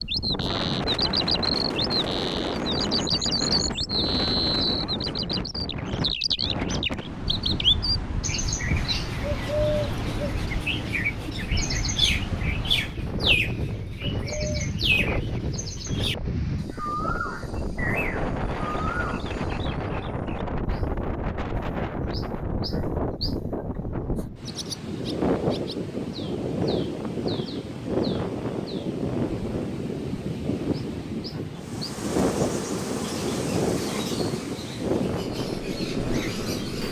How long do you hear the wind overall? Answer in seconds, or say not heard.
37 s.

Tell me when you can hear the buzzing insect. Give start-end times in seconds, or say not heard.
31.6-36.8.